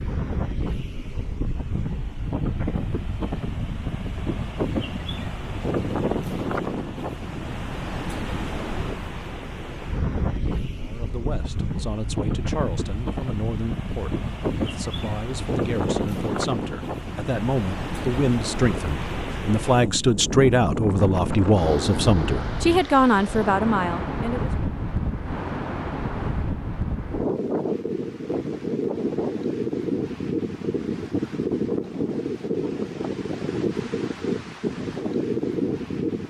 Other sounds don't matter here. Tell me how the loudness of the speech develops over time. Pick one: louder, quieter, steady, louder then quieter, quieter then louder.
louder.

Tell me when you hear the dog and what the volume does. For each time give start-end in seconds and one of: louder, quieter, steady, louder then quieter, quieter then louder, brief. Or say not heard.
not heard.